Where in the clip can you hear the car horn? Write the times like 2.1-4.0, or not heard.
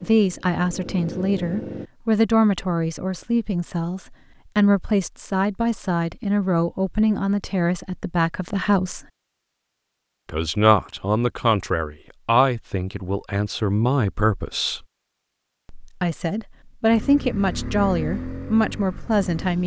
not heard.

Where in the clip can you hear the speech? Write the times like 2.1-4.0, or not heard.
0.0-9.1, 10.2-14.8, 15.7-19.6.